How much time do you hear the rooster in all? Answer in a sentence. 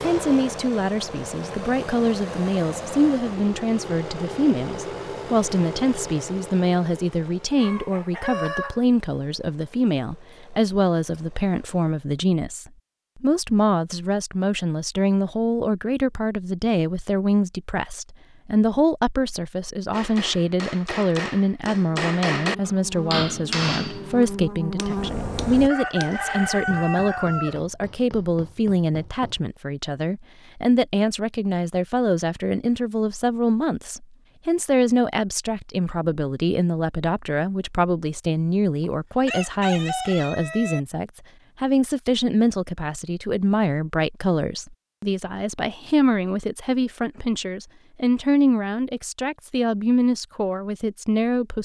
The rooster can be heard for 5 seconds in total.